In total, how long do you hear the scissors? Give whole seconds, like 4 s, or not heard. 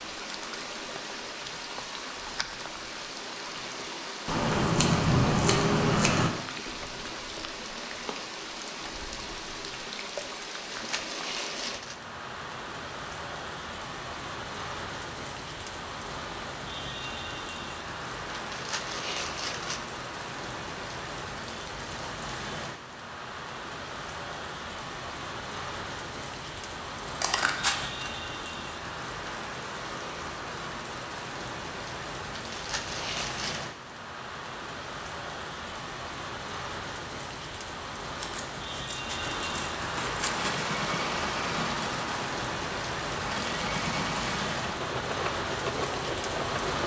6 s.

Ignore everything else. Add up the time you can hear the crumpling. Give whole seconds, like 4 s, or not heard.
4 s.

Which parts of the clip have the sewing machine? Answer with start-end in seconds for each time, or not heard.
40.2-46.8.